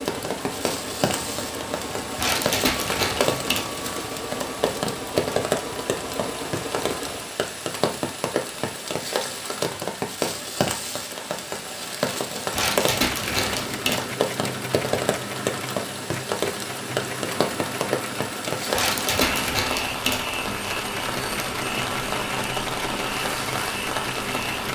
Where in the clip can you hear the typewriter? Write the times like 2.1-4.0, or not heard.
not heard.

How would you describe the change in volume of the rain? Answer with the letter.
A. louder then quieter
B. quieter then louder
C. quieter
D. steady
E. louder
D.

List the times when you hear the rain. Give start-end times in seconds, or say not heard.
0.0-24.6.